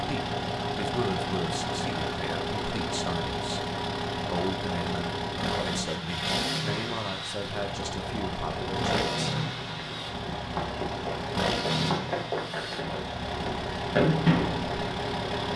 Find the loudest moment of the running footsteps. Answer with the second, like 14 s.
14 s.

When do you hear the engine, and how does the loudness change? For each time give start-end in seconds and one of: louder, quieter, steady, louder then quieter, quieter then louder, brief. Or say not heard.
0.0-15.5 steady.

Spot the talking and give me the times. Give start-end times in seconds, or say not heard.
0.0-9.4.